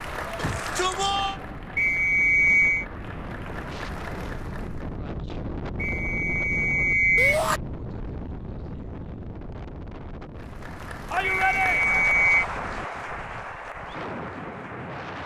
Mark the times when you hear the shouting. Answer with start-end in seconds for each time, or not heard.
0.3-1.4, 7.2-7.6, 11.1-12.1.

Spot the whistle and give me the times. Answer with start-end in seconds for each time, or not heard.
1.8-2.9, 5.8-7.4, 11.2-12.4.